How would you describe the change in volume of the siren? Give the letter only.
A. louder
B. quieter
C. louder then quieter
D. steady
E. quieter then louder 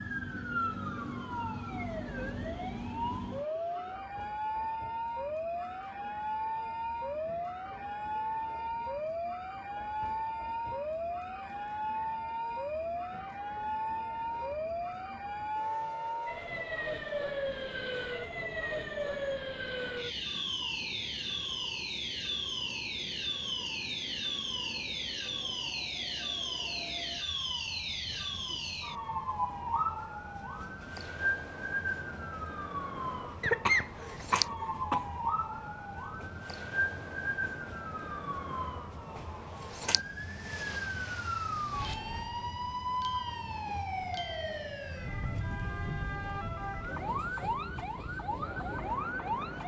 D.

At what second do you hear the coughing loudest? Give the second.
34 s.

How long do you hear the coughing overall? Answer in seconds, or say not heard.
2 s.